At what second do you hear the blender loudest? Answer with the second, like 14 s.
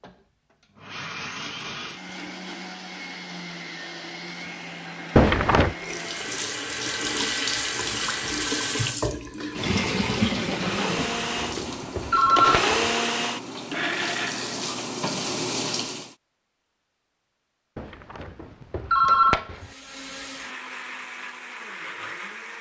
13 s.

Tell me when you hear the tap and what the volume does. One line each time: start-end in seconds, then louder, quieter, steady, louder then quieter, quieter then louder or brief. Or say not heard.
5.8-16.1 quieter then louder.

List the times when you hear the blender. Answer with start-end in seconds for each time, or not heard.
0.0-6.4, 10.3-14.8, 19.6-22.5.